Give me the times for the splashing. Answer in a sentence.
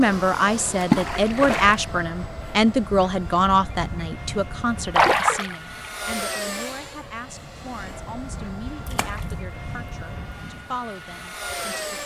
You can hear the splashing from 0.8 to 1.8 s, from 5.0 to 5.5 s and from 8.8 to 9.3 s.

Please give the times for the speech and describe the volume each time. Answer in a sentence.
The speech can be heard from 0.0 to 12.0 s, getting quieter.